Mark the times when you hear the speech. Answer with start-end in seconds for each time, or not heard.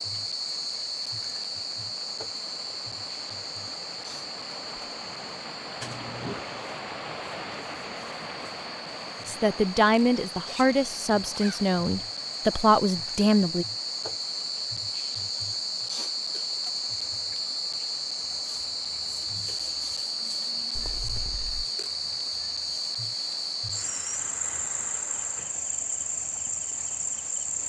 9.2-13.7.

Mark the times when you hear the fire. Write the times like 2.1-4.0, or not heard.
not heard.